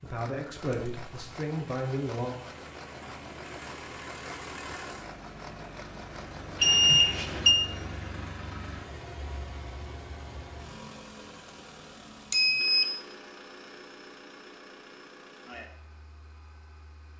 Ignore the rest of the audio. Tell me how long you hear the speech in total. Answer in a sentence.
The speech can be heard for 2 seconds in total.